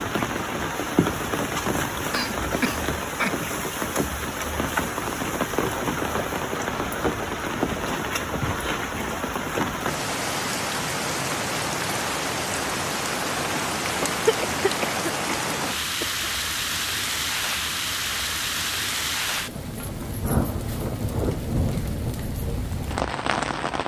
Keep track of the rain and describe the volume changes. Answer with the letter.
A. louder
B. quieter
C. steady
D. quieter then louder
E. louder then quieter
C.